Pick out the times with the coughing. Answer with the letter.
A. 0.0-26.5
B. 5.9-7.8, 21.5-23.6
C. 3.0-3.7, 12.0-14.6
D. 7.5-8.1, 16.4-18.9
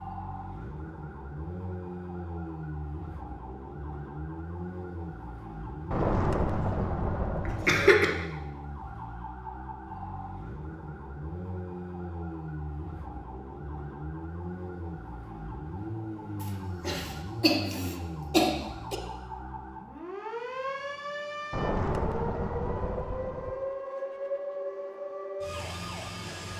D.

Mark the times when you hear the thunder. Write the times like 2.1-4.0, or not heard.
5.9-7.8, 21.5-23.6.